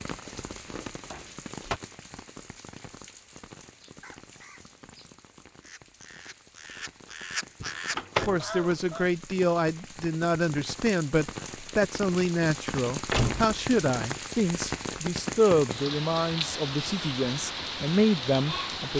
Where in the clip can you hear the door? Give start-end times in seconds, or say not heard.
0.5-1.8, 7.6-8.4, 13.1-13.7.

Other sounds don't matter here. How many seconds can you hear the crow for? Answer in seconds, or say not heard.
5 s.